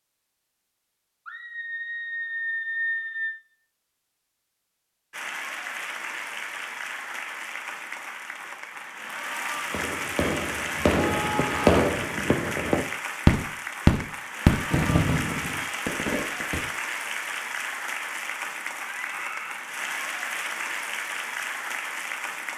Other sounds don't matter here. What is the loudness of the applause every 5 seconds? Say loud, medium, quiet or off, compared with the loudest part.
off, loud, loud, loud, loud.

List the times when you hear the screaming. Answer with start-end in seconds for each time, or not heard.
1.2-3.4, 11.1-11.8, 18.9-19.6.